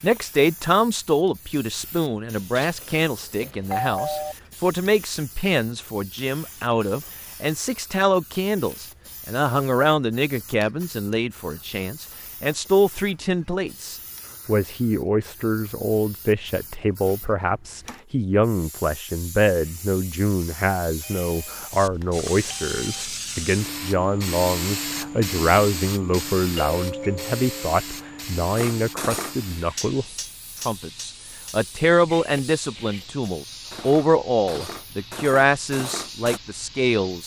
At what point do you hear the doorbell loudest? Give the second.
4 s.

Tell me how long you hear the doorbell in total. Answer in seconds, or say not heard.
5 s.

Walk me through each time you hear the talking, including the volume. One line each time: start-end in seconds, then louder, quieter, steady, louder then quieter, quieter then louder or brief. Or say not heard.
0.0-37.2 steady.